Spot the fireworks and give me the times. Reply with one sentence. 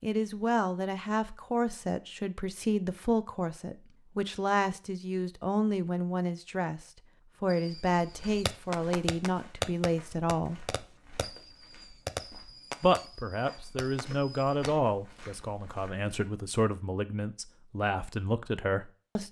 You can hear the fireworks from 7.5 to 14.7 s.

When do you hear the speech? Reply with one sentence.
The speech can be heard from 0.0 to 10.7 s and from 12.8 to 19.2 s.